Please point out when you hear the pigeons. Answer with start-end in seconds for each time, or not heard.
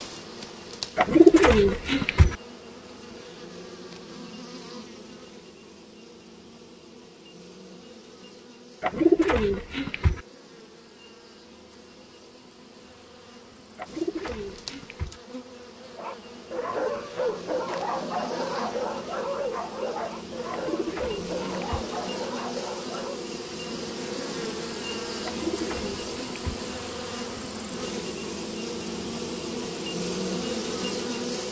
0.9-2.4, 8.8-10.2, 13.8-15.2, 20.5-21.9, 25.2-26.4.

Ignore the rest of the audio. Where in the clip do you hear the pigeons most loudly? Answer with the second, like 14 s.
1 s.